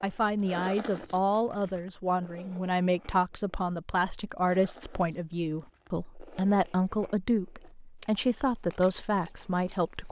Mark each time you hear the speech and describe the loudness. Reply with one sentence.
The speech can be heard from 0.0 to 10.0 s, at a steady volume.